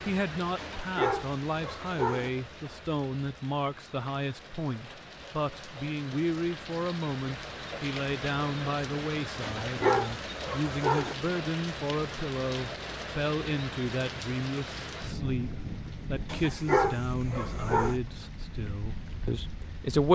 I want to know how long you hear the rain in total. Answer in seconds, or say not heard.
20 s.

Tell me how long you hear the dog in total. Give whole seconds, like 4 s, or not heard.
5 s.